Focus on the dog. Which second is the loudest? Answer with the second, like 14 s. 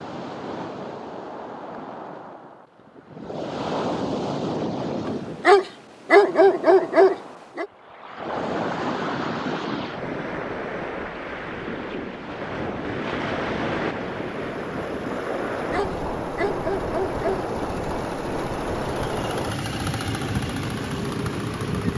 6 s.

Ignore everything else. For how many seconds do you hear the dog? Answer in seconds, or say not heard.
4 s.